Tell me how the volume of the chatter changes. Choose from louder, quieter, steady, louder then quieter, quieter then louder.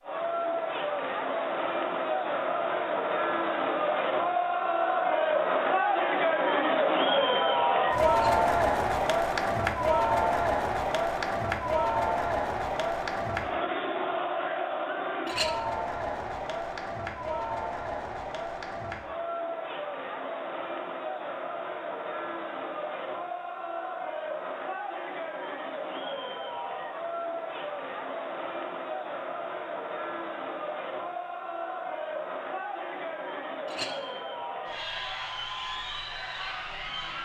quieter.